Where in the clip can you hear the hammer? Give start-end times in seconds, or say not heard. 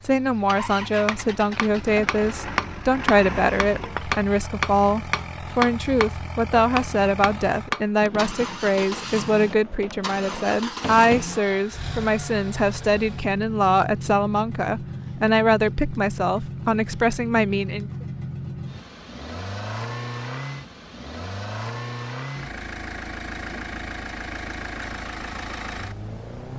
1.1-11.2.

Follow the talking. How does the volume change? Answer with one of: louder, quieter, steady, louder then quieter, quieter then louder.
steady.